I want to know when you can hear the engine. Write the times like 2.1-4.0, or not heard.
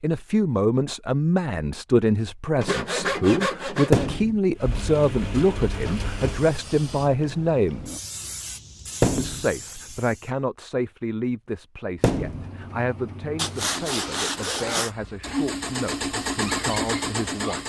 4.5-6.6, 12.1-17.6.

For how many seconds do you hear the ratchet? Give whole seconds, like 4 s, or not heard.
not heard.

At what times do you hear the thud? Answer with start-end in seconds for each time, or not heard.
3.9-4.3, 9.0-9.4, 12.0-12.5.